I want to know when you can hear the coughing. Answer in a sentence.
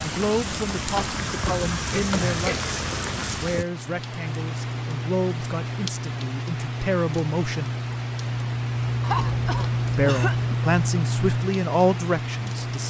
The coughing can be heard from 0.9 to 2.6 s and from 9.0 to 10.7 s.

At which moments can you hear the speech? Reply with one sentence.
The speech can be heard from 0.0 to 7.8 s and from 9.9 to 12.8 s.